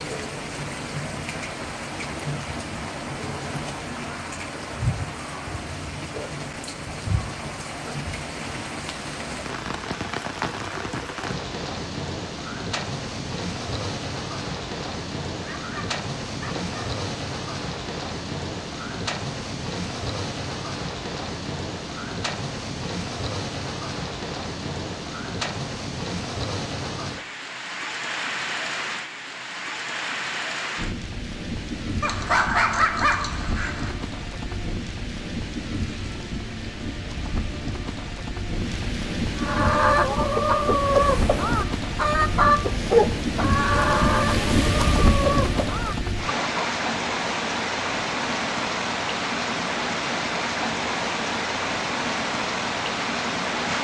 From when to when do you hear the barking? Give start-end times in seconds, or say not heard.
15.4-16.8, 32.0-34.0.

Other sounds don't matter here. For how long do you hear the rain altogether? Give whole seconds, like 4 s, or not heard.
54 s.